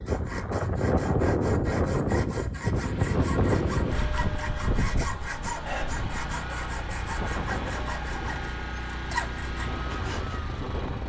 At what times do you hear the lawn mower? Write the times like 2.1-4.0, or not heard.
2.6-11.0.